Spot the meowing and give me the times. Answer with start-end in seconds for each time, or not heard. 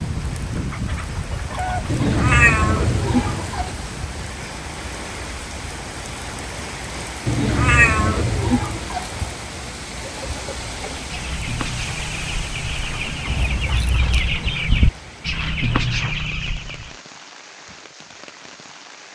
1.9-3.7, 7.2-9.1, 13.2-14.4.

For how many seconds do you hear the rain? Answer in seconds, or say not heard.
19 s.